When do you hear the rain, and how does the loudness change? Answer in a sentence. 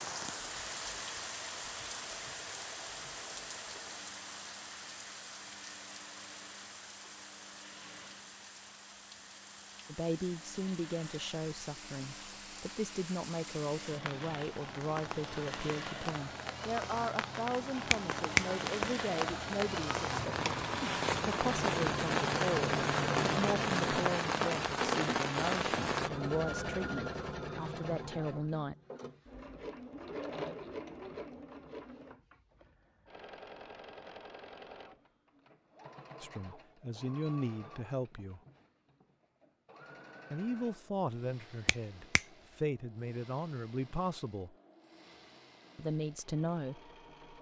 You can hear the rain from 0.0 to 26.1 s, getting quieter then louder.